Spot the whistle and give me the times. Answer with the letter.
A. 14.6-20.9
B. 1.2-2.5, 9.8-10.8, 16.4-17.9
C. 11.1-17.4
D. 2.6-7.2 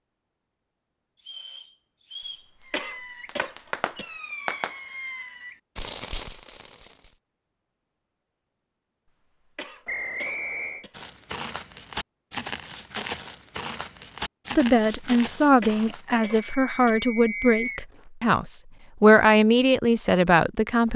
B.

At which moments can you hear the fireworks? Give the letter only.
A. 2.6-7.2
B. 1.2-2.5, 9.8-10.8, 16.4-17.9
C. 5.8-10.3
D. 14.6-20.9
A.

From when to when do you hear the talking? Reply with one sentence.
The talking can be heard from 14.6 to 20.9 s.